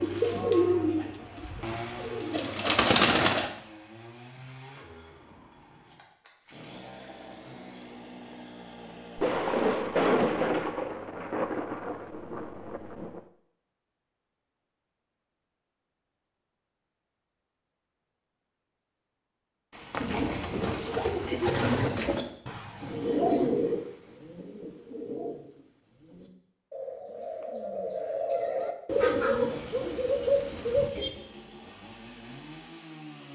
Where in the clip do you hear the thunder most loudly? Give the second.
10 s.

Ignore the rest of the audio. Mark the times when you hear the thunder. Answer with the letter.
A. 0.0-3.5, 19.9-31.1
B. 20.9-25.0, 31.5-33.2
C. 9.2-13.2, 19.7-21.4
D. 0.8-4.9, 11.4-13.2
C.